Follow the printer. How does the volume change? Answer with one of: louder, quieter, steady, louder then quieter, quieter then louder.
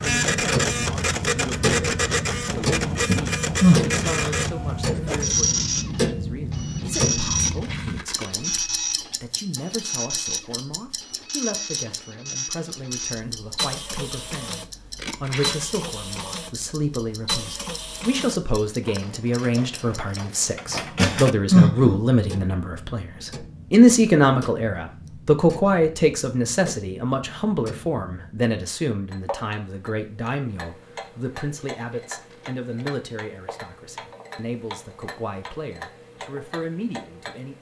quieter.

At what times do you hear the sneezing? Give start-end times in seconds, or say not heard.
3.0-4.3, 20.9-21.9.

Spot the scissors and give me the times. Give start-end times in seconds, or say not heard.
7.3-8.6, 14.9-15.7, 31.9-32.9.